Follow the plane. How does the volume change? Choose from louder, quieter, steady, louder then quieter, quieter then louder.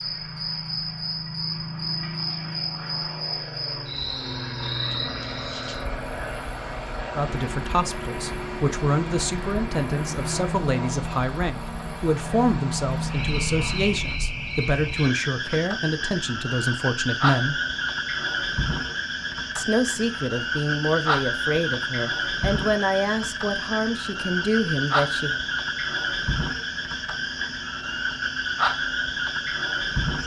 steady.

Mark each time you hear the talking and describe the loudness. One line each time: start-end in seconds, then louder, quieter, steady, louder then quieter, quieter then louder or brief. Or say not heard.
7.2-17.6 steady
19.6-25.4 steady.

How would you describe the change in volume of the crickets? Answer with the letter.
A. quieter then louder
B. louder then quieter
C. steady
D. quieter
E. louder
A.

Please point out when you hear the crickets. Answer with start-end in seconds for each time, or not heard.
0.0-30.2.